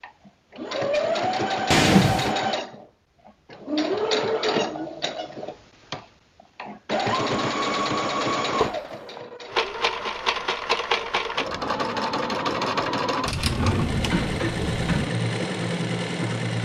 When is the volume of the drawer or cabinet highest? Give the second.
2 s.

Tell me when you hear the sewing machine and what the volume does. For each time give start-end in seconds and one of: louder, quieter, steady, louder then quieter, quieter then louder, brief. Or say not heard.
0.0-16.6 steady.